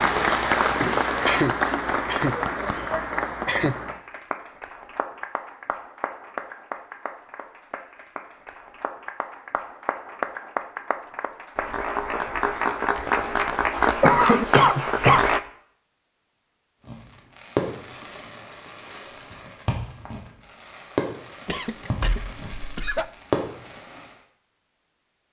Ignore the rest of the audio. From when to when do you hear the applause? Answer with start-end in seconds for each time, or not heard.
0.0-15.4.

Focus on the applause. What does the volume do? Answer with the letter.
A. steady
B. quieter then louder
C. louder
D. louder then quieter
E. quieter
B.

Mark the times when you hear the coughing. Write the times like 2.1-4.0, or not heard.
1.1-3.8, 14.0-15.2, 21.4-23.1.